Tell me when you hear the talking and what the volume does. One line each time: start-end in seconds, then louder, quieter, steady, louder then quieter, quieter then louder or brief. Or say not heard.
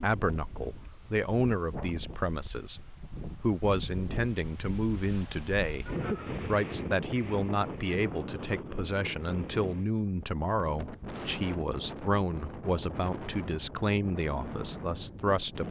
0.0-15.6 steady.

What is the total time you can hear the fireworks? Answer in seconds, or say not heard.
not heard.